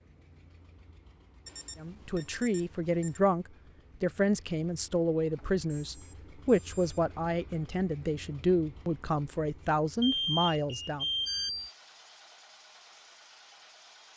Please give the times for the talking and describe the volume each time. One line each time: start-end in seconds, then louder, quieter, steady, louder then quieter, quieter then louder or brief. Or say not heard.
1.8-11.1 steady.